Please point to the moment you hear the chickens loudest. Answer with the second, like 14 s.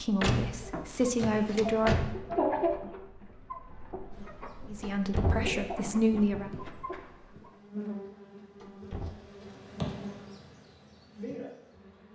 3 s.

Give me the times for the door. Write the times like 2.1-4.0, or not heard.
0.2-2.1, 4.8-6.5, 8.6-9.2.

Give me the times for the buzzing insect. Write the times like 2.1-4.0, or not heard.
4.1-12.1.